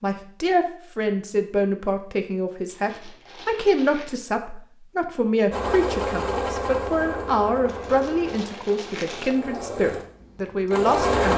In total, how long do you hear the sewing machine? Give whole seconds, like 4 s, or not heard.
6 s.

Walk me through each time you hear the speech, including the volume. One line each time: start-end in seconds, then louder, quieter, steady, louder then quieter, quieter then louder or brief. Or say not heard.
0.0-11.3 steady.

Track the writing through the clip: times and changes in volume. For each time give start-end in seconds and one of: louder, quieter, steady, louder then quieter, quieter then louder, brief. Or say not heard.
not heard.